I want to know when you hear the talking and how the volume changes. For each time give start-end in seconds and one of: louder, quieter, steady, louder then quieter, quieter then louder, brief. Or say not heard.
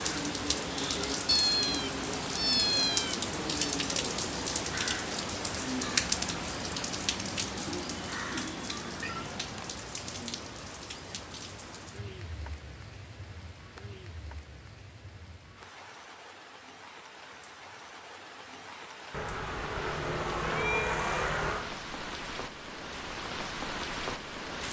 not heard.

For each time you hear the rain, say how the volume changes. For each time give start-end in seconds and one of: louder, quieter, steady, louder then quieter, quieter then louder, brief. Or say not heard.
0.0-24.6 quieter then louder.